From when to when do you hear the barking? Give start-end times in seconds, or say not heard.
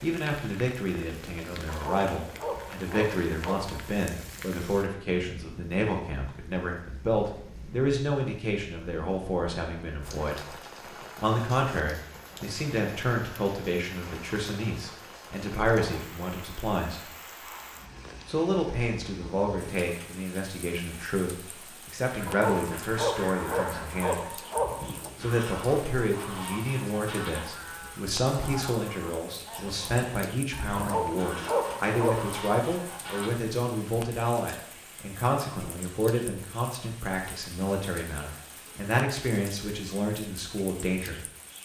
1.6-3.9, 22.2-25.1, 30.8-32.4.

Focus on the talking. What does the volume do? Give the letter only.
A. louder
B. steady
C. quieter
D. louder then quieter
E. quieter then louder
B.